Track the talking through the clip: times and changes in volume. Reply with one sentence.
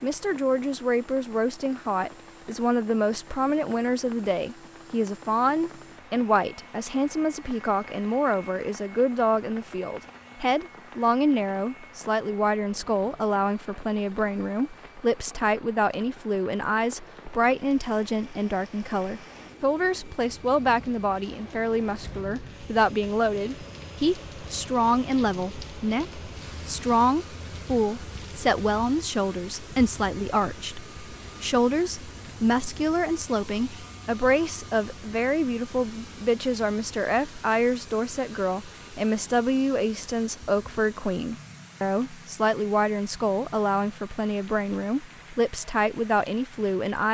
The talking can be heard from 0.0 to 47.0 s, at a steady volume.